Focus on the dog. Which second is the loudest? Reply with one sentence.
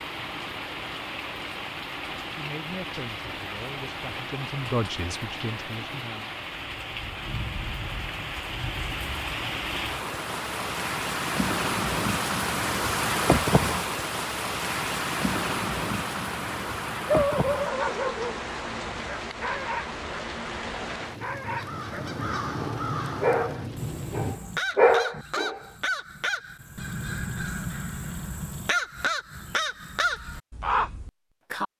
The loudest moment of the dog is at 25 seconds.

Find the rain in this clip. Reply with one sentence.
The rain can be heard from 0.0 to 24.4 s.